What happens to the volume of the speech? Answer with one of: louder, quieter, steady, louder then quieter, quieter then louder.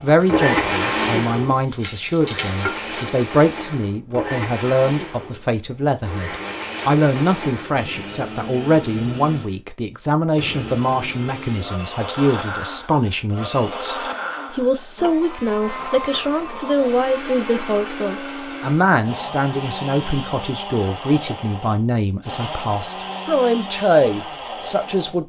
steady.